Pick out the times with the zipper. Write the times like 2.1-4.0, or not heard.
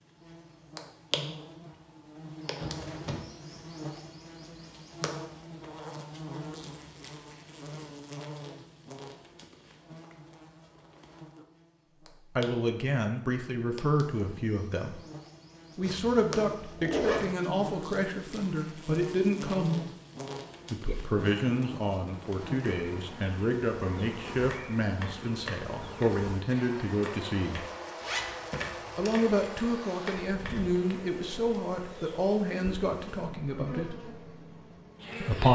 2.6-3.2, 15.8-17.2, 28.0-29.5.